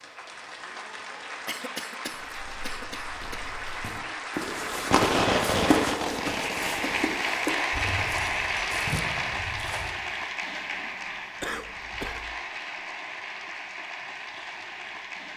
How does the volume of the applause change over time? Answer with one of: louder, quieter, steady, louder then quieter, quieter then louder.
louder then quieter.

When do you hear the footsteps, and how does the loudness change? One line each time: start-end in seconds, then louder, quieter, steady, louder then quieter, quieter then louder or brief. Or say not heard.
2.1-10.1 louder then quieter.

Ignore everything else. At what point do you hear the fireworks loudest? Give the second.
5 s.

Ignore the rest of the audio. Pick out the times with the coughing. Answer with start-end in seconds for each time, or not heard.
1.4-3.4, 11.4-12.3.